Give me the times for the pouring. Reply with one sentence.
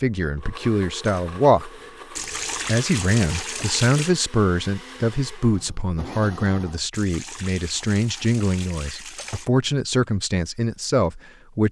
You can hear the pouring from 2.1 to 4.2 s and from 6.9 to 9.5 s.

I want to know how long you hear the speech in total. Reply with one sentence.
The speech can be heard for 11 seconds in total.